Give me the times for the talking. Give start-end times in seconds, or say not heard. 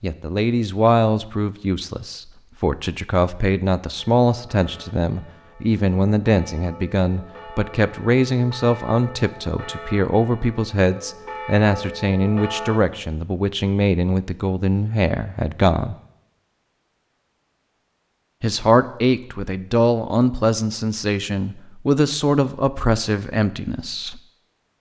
0.0-15.9, 18.4-24.2.